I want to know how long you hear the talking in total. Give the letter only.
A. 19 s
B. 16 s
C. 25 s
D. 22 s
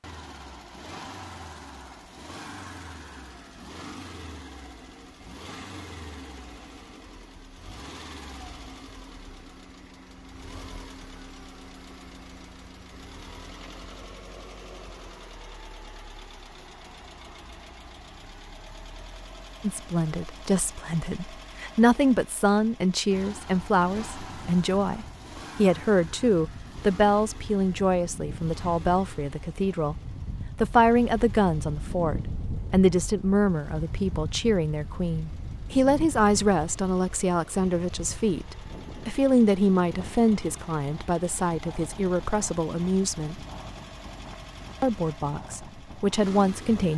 C.